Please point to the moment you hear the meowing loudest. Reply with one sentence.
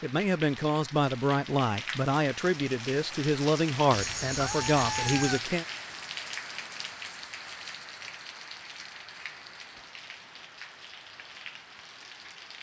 The volume of the meowing peaks at 5 seconds.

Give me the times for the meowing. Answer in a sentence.
You can hear the meowing from 3.9 to 5.4 s.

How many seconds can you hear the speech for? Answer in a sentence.
The speech can be heard for 6 seconds in total.